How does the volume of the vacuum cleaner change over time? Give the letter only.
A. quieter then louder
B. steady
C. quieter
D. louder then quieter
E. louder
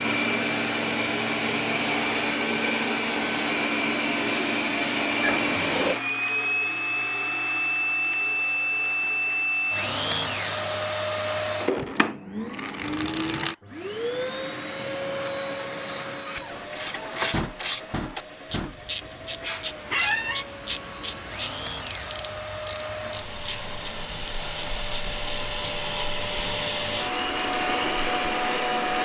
A.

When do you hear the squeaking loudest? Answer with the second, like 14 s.
20 s.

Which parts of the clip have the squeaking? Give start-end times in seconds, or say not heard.
5.2-6.0, 16.2-17.4, 19.9-20.4.